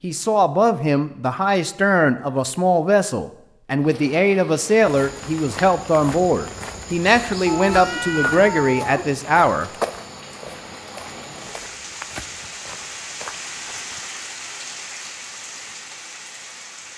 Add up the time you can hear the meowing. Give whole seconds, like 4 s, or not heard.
2 s.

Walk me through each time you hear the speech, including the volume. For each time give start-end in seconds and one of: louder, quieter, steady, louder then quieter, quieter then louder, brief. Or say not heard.
0.0-9.7 steady.